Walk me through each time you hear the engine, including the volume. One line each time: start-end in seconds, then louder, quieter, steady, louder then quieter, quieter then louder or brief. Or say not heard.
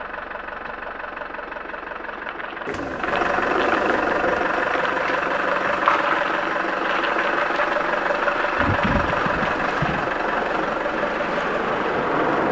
0.0-12.4 louder.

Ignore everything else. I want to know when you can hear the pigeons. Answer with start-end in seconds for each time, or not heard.
2.6-4.6.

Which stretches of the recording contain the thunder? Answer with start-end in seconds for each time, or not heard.
8.6-10.1.